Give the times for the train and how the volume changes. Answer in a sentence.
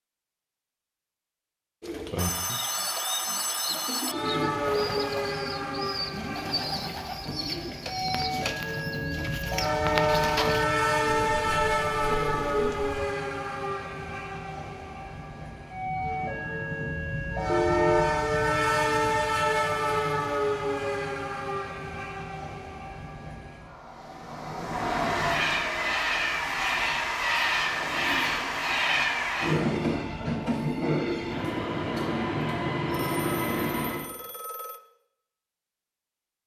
You can hear the train from 4.0 to 34.1 s, at a steady volume.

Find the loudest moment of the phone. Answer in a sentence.
The loudest moment of the phone is at 18 seconds.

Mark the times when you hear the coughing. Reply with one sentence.
You can't hear the coughing here.